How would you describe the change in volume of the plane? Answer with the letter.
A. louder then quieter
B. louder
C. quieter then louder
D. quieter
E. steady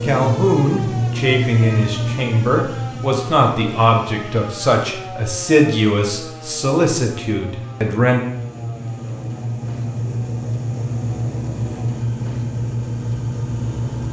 C.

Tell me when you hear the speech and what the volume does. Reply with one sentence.
The speech can be heard from 0.0 to 8.2 s, at a steady volume.